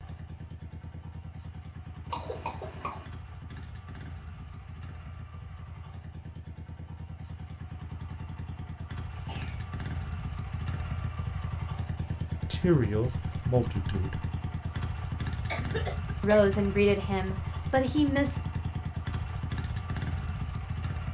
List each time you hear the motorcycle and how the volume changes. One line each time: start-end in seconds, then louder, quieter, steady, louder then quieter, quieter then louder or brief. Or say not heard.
0.0-21.0 louder.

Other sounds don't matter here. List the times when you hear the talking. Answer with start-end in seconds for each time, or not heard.
12.5-14.2, 16.2-18.4.